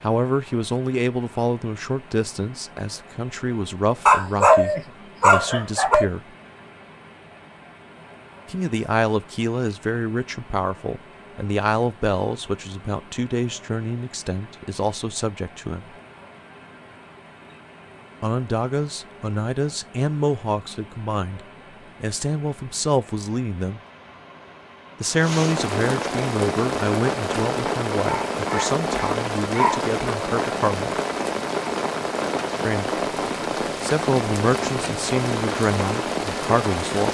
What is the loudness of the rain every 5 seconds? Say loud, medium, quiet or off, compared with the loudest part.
quiet, quiet, quiet, quiet, quiet, loud, loud, loud.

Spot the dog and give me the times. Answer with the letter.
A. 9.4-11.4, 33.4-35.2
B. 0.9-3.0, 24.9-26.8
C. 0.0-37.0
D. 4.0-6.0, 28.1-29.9
D.